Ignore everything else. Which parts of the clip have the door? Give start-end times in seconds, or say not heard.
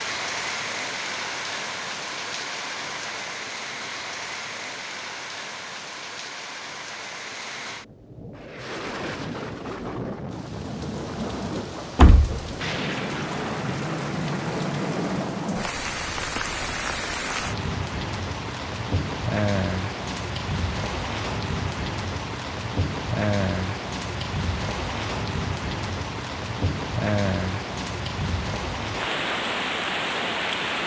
11.9-12.5.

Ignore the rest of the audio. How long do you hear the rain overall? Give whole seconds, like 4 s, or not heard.
31 s.